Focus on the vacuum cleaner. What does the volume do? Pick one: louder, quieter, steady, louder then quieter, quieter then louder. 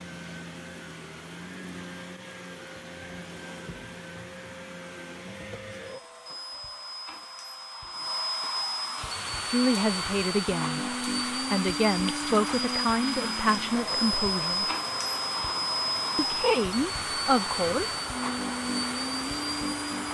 louder.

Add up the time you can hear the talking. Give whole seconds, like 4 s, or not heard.
7 s.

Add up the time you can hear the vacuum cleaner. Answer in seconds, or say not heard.
20 s.